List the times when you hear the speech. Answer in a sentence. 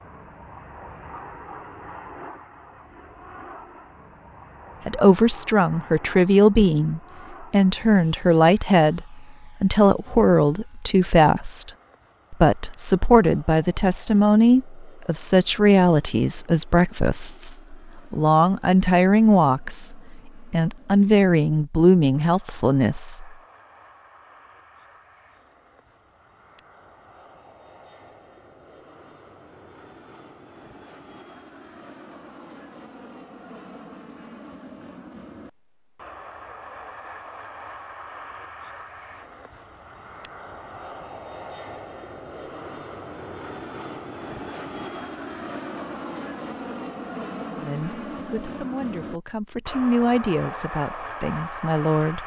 The speech can be heard from 4.8 to 11.7 s, from 12.3 to 23.3 s and from 47.5 to 52.2 s.